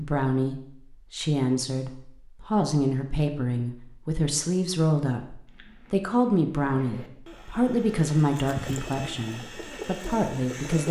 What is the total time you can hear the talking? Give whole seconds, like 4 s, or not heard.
11 s.